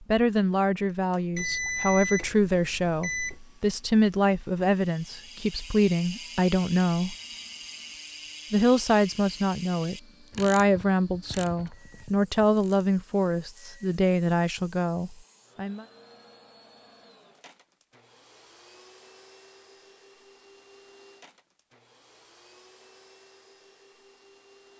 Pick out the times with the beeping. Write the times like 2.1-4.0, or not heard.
1.4-3.4.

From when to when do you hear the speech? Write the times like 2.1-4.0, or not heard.
0.0-7.2, 8.5-15.8.